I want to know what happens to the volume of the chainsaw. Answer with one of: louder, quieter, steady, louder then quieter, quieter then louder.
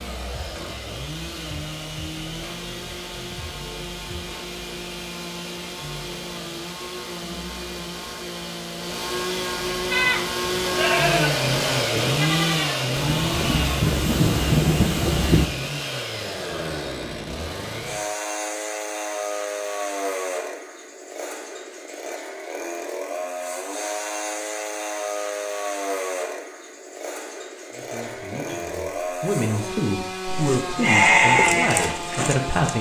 louder then quieter.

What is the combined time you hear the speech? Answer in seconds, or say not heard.
5 s.